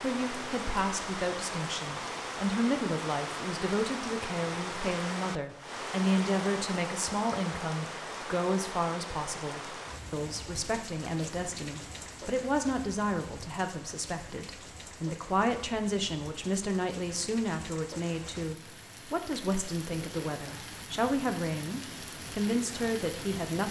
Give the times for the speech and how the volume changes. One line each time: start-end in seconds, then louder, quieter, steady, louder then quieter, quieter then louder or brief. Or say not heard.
0.0-23.6 steady.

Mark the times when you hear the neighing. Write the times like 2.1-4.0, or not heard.
not heard.